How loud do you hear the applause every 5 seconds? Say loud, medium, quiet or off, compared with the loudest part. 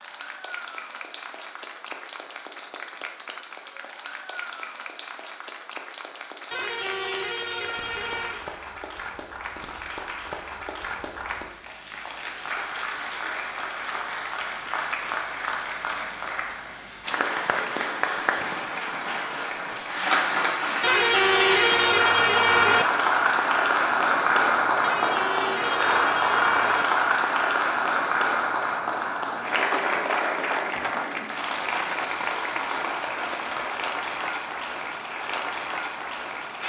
quiet, quiet, medium, medium, loud, loud, medium, medium.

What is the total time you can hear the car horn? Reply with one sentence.
You can hear the car horn for 6 seconds altogether.